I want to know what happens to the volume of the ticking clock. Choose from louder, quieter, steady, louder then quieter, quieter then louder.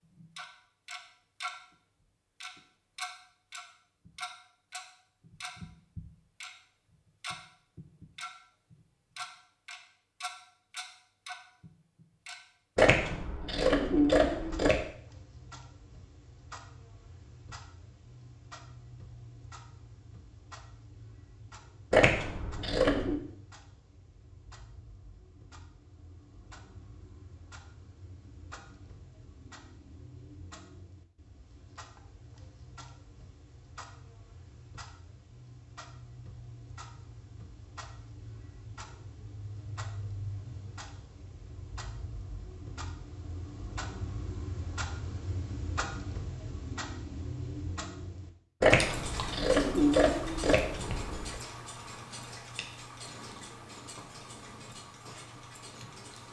quieter then louder.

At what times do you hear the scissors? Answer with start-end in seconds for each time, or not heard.
12.8-14.8, 21.9-23.1, 48.6-51.4.